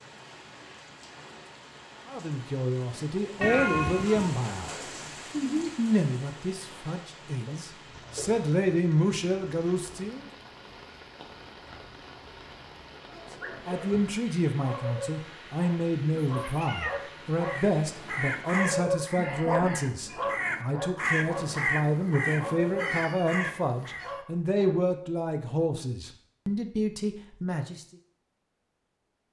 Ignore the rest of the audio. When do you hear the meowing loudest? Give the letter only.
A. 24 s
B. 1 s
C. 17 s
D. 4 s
D.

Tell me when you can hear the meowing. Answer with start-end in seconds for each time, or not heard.
3.4-4.3, 16.1-17.0, 22.8-24.2.